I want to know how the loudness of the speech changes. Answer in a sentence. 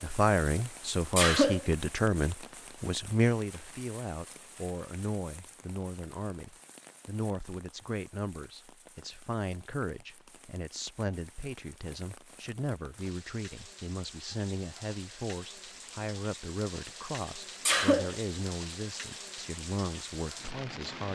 The loudness of the speech goes down.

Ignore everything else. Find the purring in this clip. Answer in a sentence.
The purring can't be heard in this clip.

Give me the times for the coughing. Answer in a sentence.
You can hear the coughing from 1.1 to 1.6 s and from 17.6 to 18.1 s.